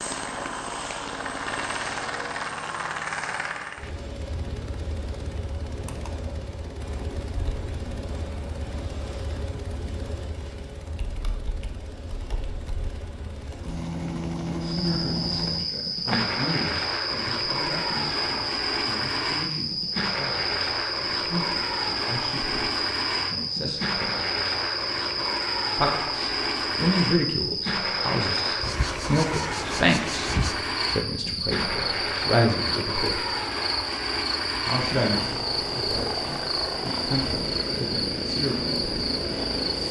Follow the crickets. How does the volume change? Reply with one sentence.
The loudness of the crickets stays about the same.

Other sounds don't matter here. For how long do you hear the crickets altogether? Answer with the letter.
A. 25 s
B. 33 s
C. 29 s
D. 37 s
A.